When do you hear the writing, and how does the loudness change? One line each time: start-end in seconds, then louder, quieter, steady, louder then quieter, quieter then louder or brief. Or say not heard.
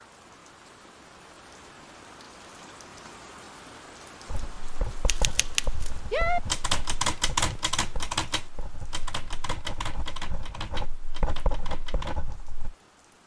4.2-12.8 quieter then louder.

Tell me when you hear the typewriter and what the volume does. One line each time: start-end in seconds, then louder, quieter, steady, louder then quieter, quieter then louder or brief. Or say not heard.
5.0-12.2 quieter.